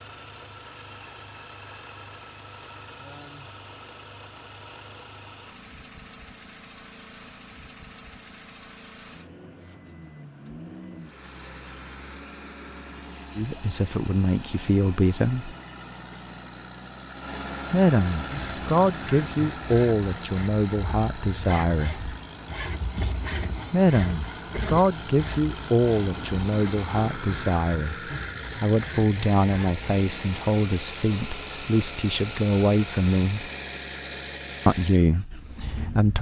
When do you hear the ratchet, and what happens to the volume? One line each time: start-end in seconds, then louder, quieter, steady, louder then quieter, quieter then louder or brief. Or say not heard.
not heard.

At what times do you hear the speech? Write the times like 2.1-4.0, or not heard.
13.3-15.6, 17.7-22.1, 23.7-33.5, 34.6-36.1.